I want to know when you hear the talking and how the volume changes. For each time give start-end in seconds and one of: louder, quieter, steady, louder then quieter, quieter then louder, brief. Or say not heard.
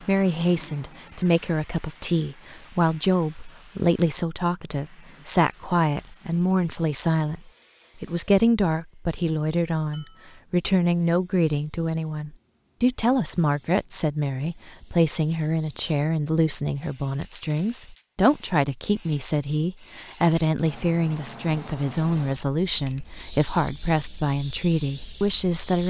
0.0-25.8 steady.